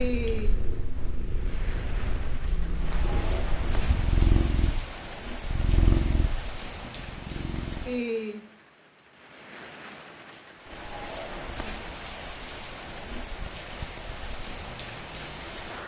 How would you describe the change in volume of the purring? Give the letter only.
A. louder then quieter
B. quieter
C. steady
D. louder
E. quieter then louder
A.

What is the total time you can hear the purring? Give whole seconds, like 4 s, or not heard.
8 s.